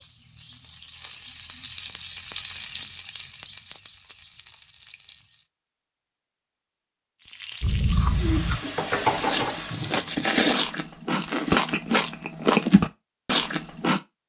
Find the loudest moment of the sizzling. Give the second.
9 s.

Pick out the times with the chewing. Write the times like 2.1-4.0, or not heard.
7.6-14.0.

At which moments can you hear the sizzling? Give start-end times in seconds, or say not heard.
0.0-5.5, 7.2-10.3.